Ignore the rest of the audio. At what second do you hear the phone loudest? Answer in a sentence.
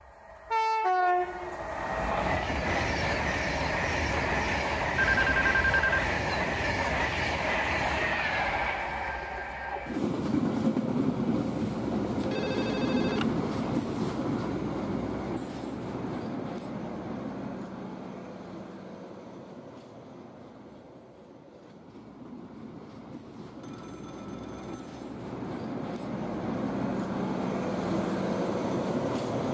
The loudest moment of the phone is at 5 seconds.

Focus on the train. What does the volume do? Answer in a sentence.
The volume of the train goes down, then up.